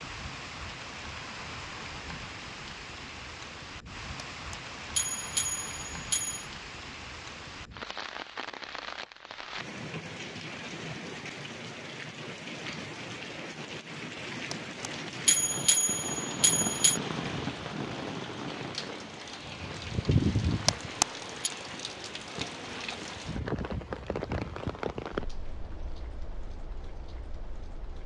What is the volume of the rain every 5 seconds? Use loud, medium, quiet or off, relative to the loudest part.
medium, medium, medium, loud, loud, medium.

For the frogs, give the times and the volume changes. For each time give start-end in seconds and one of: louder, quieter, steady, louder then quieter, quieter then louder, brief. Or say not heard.
not heard.